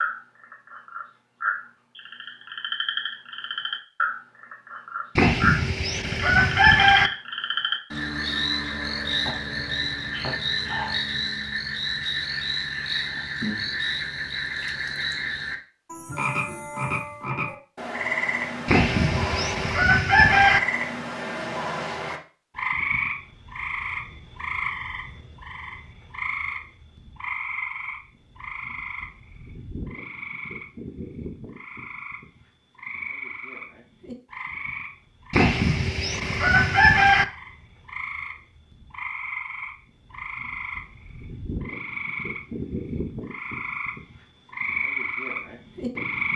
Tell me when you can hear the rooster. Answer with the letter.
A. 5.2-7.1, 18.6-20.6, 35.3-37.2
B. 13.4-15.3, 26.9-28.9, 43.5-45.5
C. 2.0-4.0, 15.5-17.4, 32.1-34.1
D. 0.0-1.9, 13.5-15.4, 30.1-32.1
A.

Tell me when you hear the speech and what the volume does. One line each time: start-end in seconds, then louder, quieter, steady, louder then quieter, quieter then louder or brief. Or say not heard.
not heard.